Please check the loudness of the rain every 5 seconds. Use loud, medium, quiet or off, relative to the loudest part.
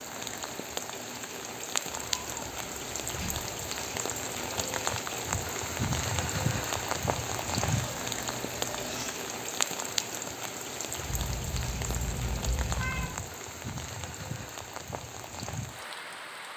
loud, loud, medium, medium.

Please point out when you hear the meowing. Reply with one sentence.
The meowing can be heard from 1.9 to 3.5 s, from 7.7 to 9.2 s and from 11.1 to 13.1 s.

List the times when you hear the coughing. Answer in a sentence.
You can't hear the coughing here.